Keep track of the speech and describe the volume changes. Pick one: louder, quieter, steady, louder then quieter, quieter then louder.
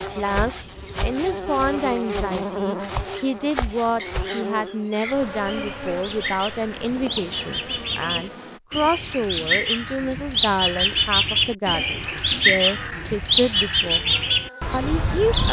steady.